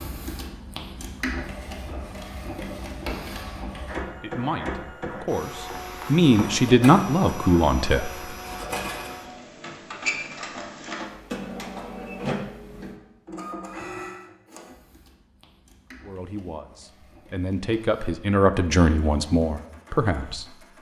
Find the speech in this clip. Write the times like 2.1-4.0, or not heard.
4.2-8.1, 16.0-20.6.